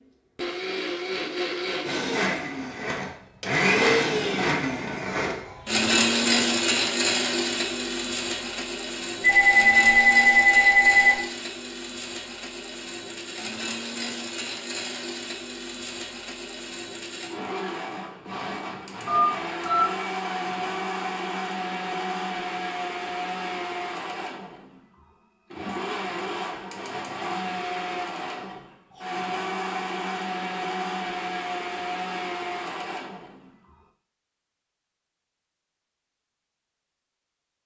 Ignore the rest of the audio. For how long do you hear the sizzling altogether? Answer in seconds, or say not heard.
not heard.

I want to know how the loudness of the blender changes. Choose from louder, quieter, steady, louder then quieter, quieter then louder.
quieter.